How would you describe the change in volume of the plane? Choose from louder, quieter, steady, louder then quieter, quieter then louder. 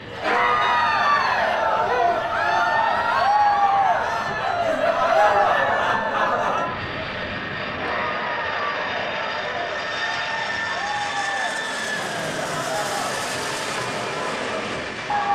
louder.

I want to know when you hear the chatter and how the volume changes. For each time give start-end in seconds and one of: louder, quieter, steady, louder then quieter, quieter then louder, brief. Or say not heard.
0.1-15.3 quieter.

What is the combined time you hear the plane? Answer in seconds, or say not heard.
15 s.